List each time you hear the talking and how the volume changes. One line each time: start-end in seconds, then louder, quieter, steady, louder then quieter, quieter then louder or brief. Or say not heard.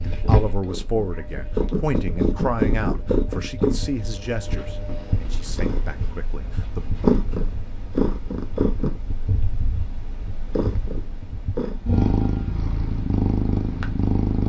0.0-6.8 quieter.